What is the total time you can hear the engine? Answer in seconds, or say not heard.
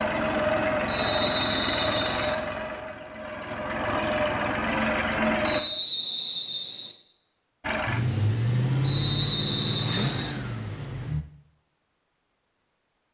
9 s.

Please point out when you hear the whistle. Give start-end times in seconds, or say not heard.
0.8-2.4, 5.4-7.0, 8.8-10.3.